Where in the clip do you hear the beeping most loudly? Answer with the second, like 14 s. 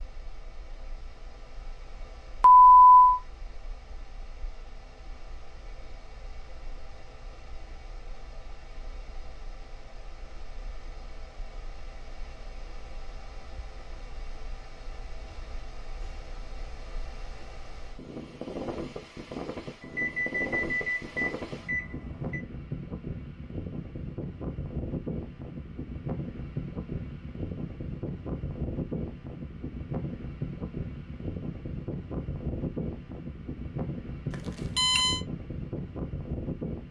3 s.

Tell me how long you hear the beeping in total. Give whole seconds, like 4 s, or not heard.
4 s.